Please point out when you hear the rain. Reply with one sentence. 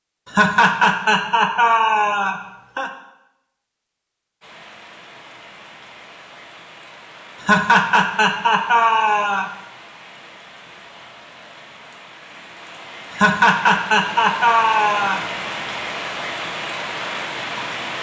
The rain can be heard from 4.4 to 17.9 s.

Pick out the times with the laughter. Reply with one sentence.
You can hear the laughter from 0.3 to 2.9 s, from 7.4 to 9.5 s and from 13.1 to 15.2 s.